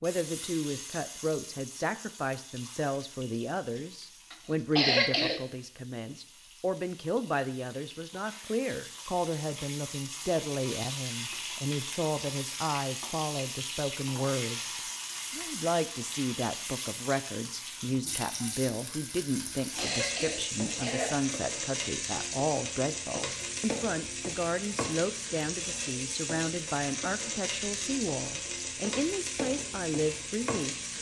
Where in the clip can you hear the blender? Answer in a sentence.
The blender can't be heard in this clip.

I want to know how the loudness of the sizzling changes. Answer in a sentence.
The loudness of the sizzling goes up.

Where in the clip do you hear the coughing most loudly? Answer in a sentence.
The loudest moment of the coughing is at 5 seconds.